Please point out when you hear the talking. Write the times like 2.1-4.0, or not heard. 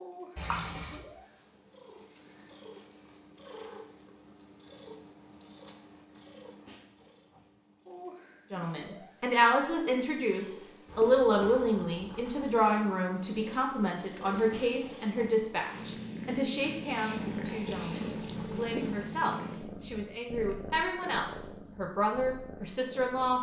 8.5-23.3.